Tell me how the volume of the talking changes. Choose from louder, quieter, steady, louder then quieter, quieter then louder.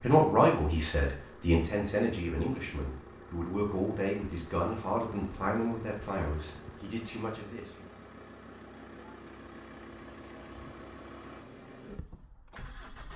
quieter.